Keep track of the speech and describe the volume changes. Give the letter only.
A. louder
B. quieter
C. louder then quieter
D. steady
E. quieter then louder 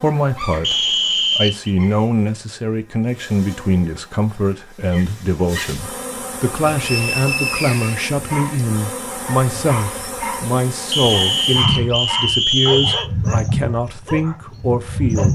D.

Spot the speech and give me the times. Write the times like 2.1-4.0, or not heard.
0.0-15.3.